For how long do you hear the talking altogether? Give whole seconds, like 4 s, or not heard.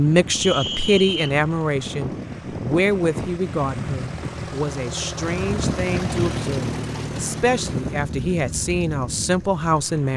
10 s.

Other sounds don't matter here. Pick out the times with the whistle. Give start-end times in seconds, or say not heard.
0.4-1.4.